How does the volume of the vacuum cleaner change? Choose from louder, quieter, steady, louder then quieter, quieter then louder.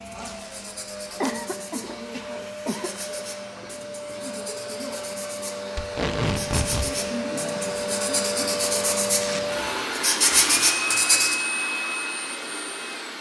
louder.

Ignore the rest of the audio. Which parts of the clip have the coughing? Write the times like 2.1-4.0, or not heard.
1.2-2.9.